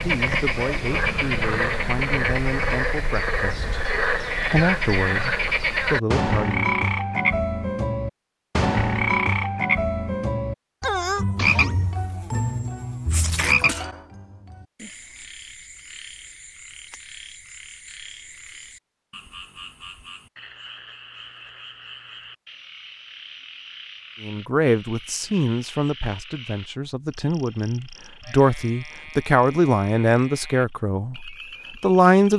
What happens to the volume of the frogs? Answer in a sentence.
The loudness of the frogs goes down.